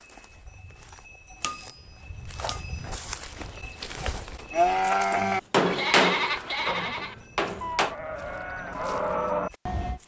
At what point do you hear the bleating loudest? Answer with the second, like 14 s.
5 s.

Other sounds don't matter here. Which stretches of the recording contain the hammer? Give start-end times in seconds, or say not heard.
1.4-2.8, 5.1-8.0.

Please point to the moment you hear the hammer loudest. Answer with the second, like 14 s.
6 s.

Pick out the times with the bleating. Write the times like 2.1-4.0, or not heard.
4.5-10.0.